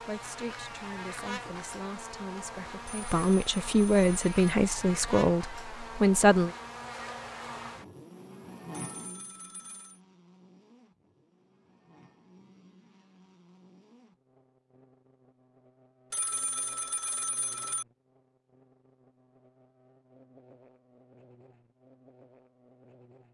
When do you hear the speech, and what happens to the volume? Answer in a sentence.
The speech can be heard from 0.0 to 6.5 s, getting louder.